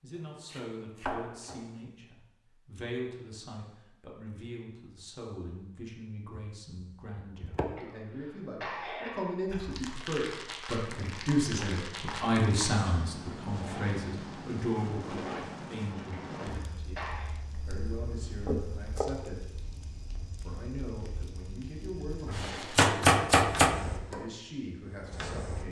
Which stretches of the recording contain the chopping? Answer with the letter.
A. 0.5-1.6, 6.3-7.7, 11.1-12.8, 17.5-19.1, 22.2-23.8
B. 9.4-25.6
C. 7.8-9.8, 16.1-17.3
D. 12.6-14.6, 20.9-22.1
A.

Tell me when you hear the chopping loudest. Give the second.
23 s.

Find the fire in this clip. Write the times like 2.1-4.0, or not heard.
9.4-25.6.